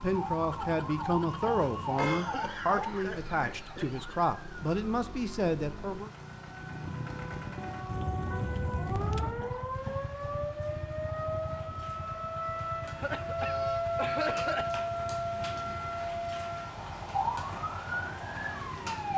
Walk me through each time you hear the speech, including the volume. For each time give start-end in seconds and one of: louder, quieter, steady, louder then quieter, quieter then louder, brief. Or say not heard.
0.0-6.1 steady.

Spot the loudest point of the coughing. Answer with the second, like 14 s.
14 s.